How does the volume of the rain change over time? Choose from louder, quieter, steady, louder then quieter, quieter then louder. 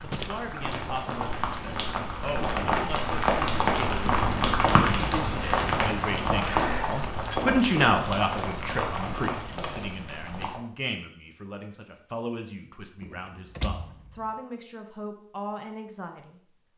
louder then quieter.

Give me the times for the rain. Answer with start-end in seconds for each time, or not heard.
0.0-10.6.